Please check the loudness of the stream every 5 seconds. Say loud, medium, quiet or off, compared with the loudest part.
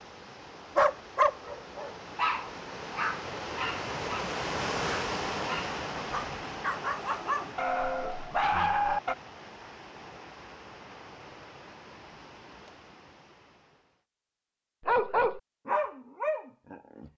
loud, loud, quiet, off.